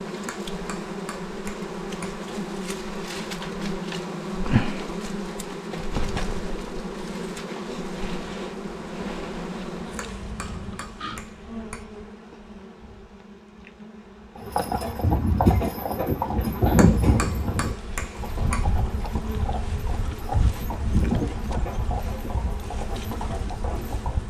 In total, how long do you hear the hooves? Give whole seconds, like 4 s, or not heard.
10 s.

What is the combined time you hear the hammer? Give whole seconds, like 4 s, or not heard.
6 s.